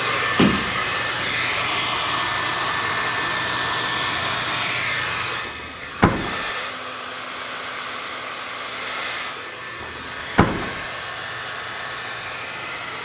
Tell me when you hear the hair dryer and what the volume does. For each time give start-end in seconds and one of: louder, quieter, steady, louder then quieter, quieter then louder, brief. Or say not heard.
0.0-12.9 quieter.